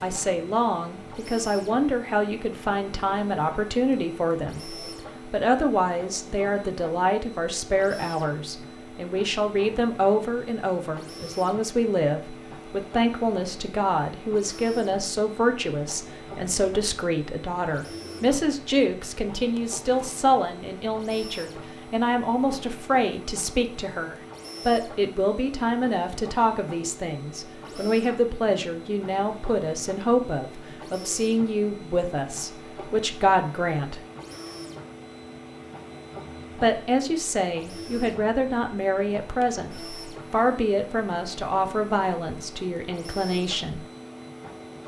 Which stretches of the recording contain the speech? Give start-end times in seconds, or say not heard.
0.0-34.0, 36.5-43.8.